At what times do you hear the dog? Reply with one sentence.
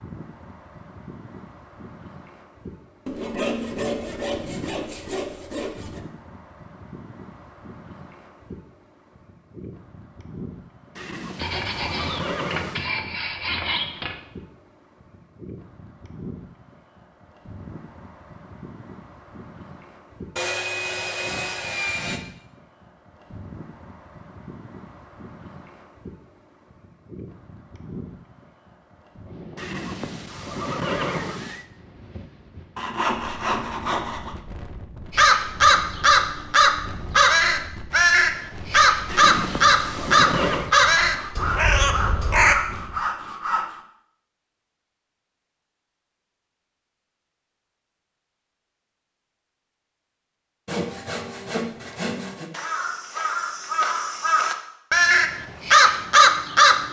The dog can't be heard in this clip.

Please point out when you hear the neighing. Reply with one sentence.
You can hear the neighing from 10.9 to 12.9 s, from 29.6 to 31.6 s and from 39.0 to 40.7 s.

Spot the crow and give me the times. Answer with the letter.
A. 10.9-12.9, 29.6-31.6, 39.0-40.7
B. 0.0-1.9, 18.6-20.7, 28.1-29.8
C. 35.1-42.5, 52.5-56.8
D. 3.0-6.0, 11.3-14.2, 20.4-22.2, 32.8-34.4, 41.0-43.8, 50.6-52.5
C.